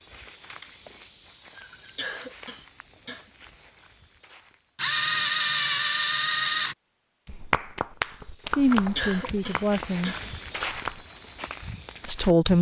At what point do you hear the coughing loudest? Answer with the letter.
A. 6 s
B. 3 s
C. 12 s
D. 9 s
D.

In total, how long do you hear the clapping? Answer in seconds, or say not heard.
4 s.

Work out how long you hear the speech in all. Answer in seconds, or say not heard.
2 s.